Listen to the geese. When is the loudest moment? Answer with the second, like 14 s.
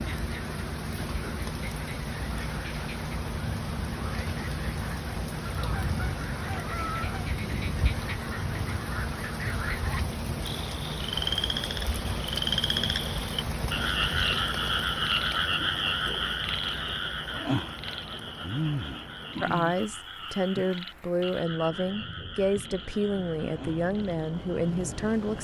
7 s.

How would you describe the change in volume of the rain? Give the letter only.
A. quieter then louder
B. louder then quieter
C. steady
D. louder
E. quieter
E.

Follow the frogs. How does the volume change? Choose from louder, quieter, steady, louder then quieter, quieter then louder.
louder then quieter.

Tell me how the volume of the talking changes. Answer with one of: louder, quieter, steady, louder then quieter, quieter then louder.
steady.